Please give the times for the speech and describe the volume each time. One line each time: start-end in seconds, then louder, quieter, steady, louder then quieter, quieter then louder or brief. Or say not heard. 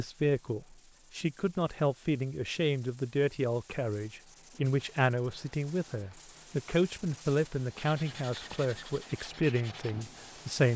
0.0-10.7 steady.